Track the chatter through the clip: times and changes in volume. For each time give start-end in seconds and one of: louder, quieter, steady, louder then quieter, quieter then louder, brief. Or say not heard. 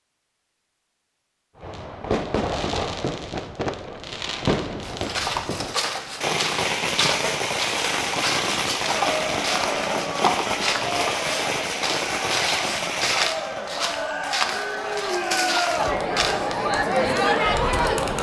8.9-18.1 louder.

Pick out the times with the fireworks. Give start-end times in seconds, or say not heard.
1.6-13.7.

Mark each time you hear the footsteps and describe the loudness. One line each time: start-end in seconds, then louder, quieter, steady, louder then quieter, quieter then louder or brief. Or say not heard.
4.8-16.4 steady.